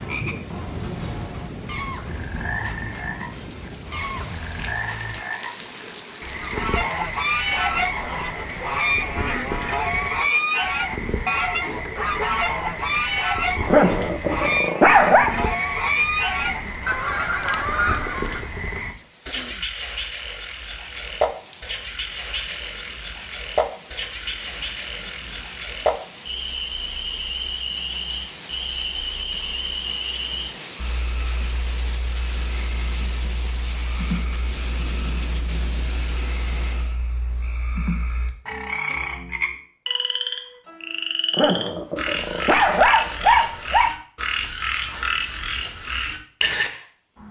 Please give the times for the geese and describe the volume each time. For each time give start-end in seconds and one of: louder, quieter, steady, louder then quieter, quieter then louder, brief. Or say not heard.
6.3-18.5 steady.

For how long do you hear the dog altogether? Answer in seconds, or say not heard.
4 s.